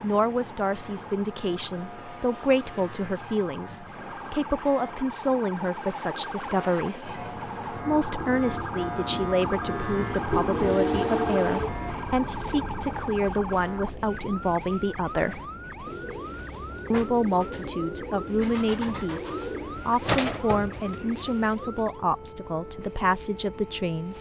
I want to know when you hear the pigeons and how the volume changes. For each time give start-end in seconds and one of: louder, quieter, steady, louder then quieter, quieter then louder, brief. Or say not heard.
15.1-22.0 louder then quieter.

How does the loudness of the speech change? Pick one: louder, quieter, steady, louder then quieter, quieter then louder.
steady.